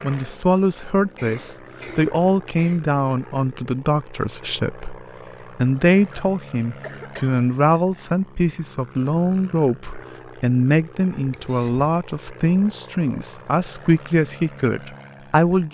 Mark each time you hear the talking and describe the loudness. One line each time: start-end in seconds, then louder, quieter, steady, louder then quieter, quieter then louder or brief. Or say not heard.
0.0-15.6 steady.